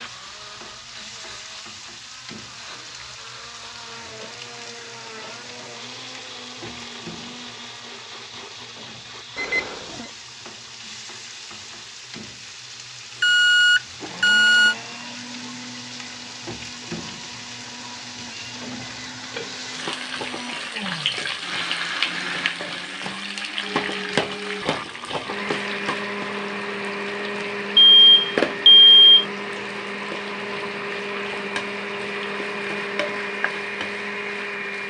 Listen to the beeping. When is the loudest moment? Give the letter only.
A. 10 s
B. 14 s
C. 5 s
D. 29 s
D.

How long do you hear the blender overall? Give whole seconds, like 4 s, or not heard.
35 s.